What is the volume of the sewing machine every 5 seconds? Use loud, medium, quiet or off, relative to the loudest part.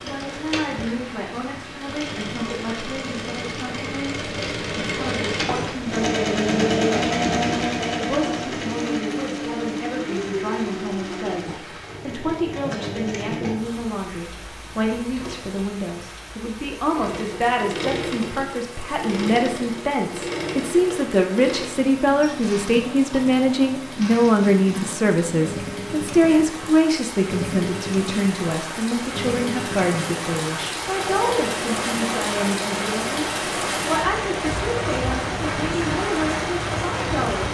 medium, loud, medium, medium, medium, medium, medium, medium.